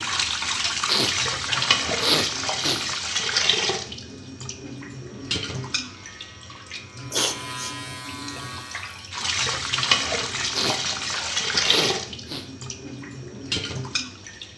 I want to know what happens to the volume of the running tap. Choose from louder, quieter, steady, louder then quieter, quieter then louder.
quieter then louder.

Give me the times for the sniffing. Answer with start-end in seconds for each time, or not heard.
0.8-2.9, 7.1-7.8, 10.5-12.4.